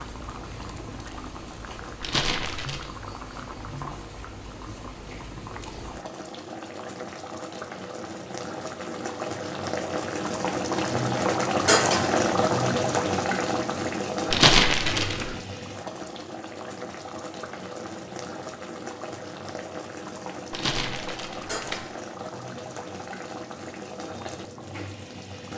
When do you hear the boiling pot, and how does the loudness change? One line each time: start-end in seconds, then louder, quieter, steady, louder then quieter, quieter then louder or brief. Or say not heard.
0.0-25.5 louder then quieter.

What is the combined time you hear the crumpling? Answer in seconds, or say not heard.
3 s.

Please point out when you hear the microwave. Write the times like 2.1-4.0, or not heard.
not heard.